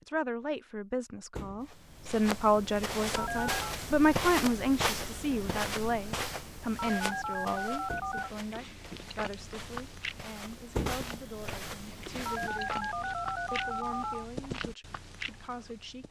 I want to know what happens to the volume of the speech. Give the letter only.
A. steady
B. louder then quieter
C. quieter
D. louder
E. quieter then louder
C.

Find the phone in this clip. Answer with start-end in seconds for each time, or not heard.
3.1-3.8, 6.8-8.3, 12.2-14.2.